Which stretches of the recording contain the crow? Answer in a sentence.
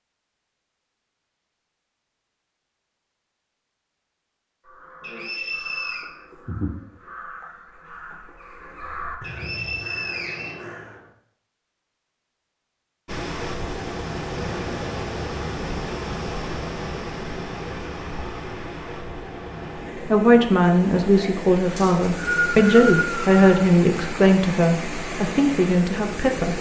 The crow can be heard from 4.7 to 11.1 s.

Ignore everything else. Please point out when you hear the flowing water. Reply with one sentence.
The flowing water can be heard from 13.1 to 26.5 s.